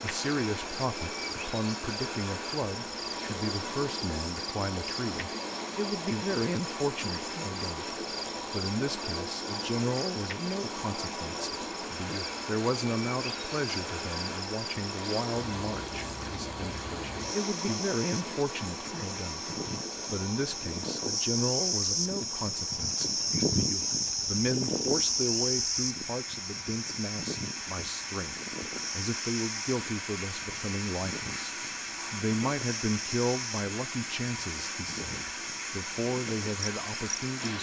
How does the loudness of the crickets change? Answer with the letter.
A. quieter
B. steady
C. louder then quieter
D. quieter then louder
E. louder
C.